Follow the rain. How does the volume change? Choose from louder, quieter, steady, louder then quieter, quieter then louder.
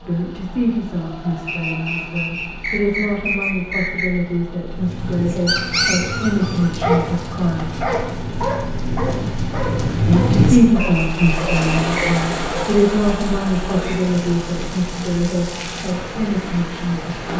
louder then quieter.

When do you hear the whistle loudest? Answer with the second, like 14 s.
3 s.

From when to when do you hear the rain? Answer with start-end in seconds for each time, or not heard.
4.7-17.3.